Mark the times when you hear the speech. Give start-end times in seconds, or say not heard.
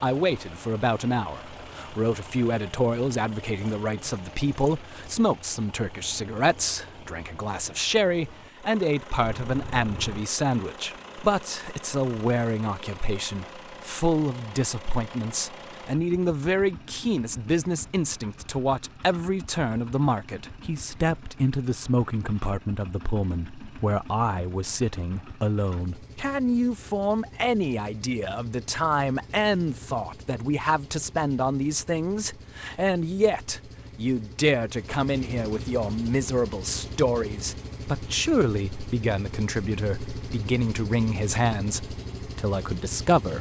0.0-43.3.